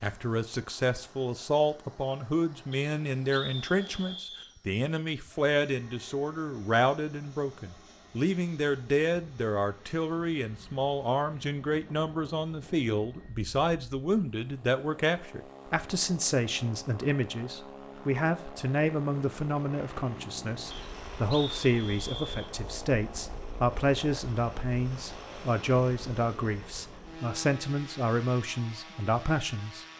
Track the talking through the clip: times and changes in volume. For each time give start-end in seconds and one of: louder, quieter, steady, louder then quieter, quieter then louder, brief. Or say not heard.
0.0-29.9 steady.